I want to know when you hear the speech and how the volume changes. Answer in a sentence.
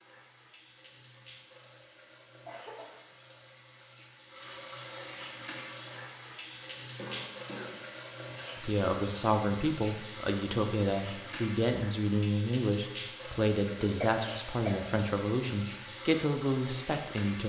You can hear the speech from 8.6 to 17.4 s, at a steady volume.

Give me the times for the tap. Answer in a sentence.
You can hear the tap from 0.0 to 17.4 s.